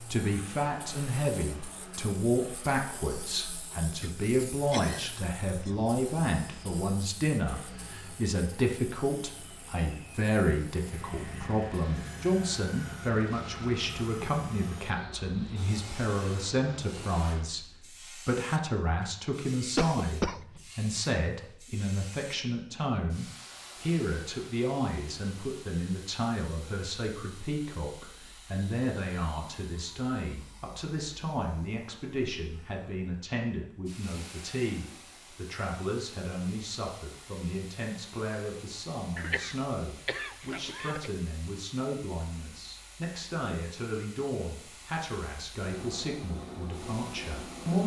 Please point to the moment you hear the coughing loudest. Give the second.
20 s.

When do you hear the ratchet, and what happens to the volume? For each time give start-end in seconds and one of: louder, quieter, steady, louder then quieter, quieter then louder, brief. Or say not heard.
not heard.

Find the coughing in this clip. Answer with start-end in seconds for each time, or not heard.
4.0-5.8, 19.8-20.6, 39.1-41.1.